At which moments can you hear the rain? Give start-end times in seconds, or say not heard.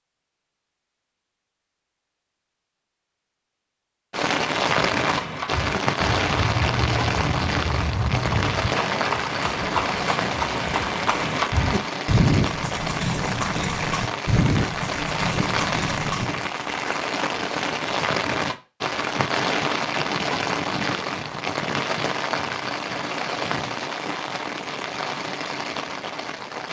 4.1-26.6.